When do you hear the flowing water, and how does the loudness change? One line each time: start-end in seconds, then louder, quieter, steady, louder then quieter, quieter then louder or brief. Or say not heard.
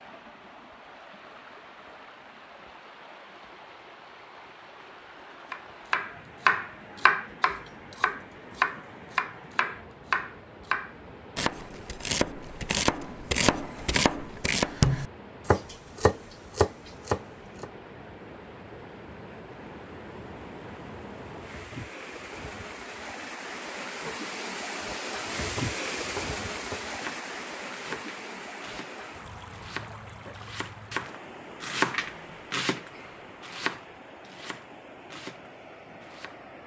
0.0-36.6 louder then quieter.